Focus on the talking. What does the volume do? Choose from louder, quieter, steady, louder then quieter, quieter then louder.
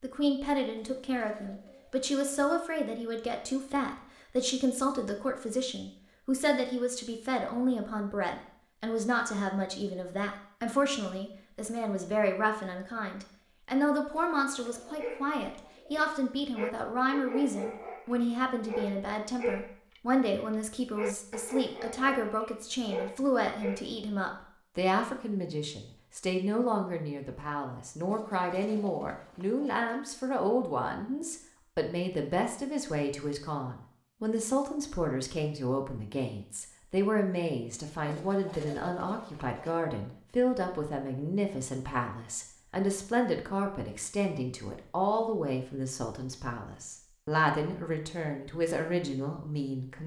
steady.